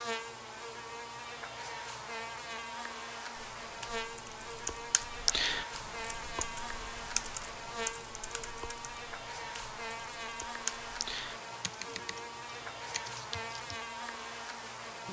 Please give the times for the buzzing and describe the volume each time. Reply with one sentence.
The buzzing can be heard from 0.0 to 15.0 s, at a steady volume.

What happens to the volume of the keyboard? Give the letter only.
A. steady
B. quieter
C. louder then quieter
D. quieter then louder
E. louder
B.